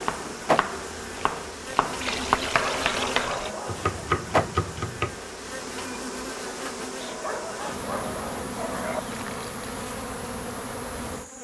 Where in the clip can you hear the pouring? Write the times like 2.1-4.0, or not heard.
1.9-3.5, 9.1-9.8.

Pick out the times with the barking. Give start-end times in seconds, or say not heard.
2.5-3.9, 7.0-9.0.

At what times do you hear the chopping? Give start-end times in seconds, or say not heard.
0.0-5.2.